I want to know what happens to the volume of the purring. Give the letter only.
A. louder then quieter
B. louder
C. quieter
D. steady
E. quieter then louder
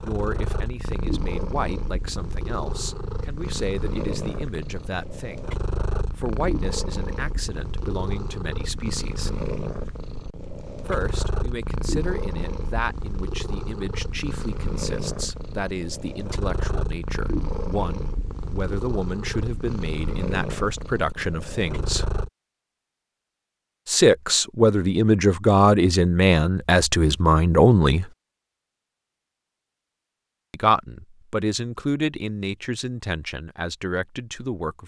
D.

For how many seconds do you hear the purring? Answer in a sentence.
You can hear the purring for 22 seconds altogether.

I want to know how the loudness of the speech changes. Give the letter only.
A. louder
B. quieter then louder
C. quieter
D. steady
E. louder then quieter
A.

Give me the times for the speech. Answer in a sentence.
The speech can be heard from 0.0 to 5.5 s, from 6.2 to 9.3 s, from 10.8 to 22.1 s, from 23.9 to 28.1 s and from 30.5 to 34.8 s.